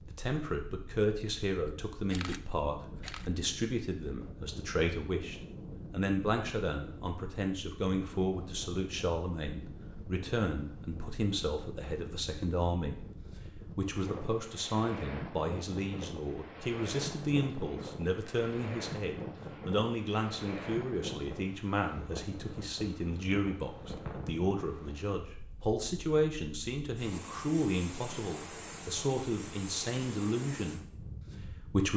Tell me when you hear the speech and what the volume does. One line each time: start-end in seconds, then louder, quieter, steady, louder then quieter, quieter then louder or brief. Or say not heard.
0.0-31.9 steady.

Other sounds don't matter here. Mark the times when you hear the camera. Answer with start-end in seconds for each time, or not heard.
2.1-3.3.